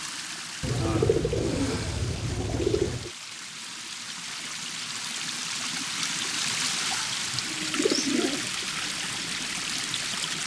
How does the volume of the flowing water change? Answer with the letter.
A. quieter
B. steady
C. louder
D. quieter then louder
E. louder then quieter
C.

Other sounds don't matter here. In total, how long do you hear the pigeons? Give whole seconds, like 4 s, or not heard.
4 s.